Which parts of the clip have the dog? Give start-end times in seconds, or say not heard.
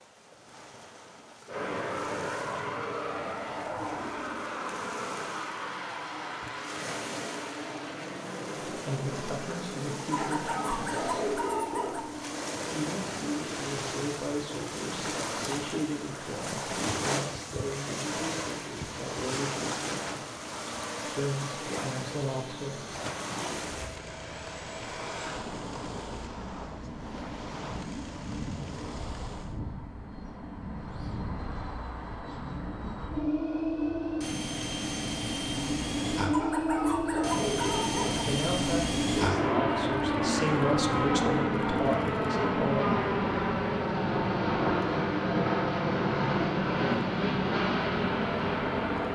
10.1-12.1, 36.3-38.4.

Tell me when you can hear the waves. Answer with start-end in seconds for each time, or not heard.
0.0-29.6.